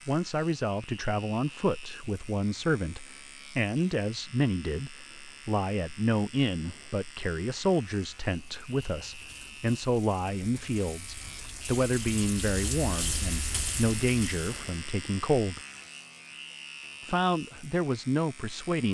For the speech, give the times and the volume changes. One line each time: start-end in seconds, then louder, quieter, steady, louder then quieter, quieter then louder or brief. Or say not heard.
0.1-15.6 steady
17.0-18.8 brief.